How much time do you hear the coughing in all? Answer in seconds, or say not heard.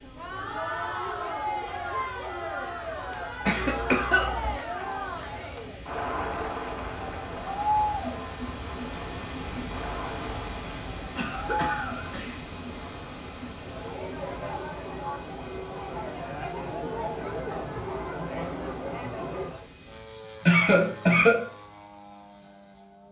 3 s.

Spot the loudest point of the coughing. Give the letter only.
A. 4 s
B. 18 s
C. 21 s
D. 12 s
C.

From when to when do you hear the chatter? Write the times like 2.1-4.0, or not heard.
0.0-19.6.